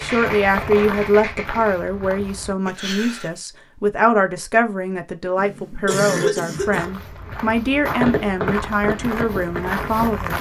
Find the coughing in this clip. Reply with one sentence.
You can hear the coughing from 2.6 to 3.4 s and from 5.3 to 6.8 s.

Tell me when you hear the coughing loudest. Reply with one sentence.
The volume of the coughing peaks at 6 seconds.